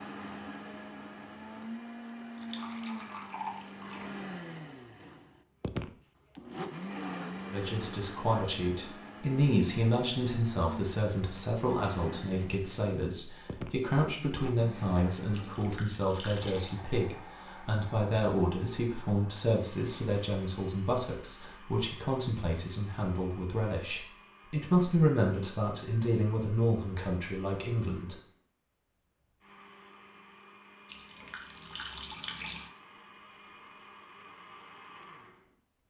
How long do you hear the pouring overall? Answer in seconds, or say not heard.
5 s.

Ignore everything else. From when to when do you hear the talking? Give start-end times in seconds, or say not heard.
7.5-28.1.